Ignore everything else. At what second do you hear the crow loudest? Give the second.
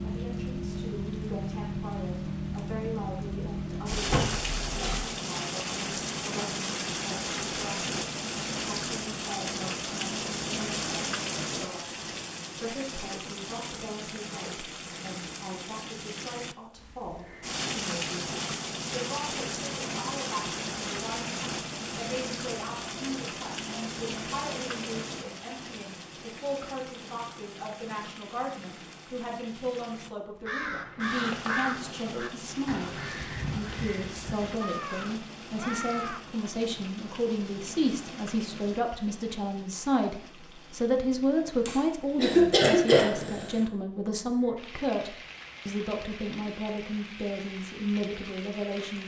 32 s.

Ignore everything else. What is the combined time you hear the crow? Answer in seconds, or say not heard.
6 s.